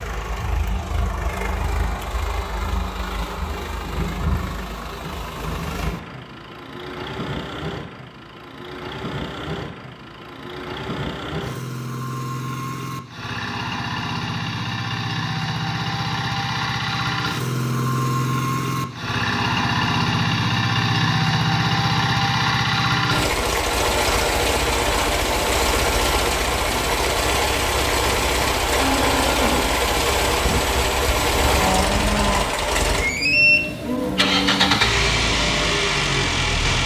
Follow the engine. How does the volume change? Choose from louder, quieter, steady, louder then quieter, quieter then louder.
louder.